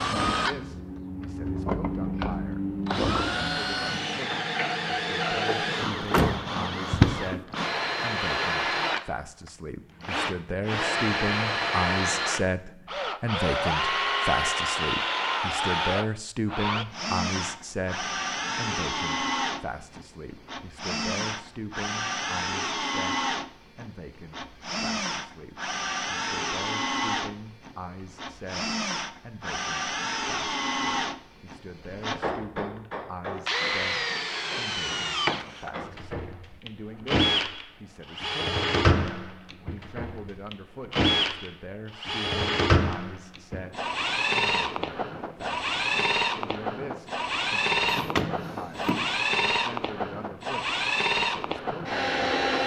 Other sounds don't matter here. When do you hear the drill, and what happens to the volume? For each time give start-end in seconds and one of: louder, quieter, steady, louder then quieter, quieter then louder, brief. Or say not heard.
0.0-52.6 steady.